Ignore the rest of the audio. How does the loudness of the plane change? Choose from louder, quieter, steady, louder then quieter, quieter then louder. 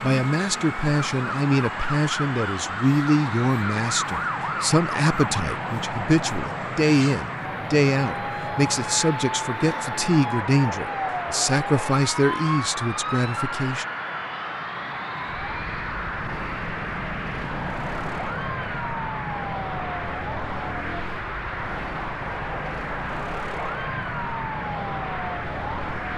steady.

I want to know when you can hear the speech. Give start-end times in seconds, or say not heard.
0.0-13.8.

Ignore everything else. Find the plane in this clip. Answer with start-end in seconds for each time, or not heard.
0.0-26.1.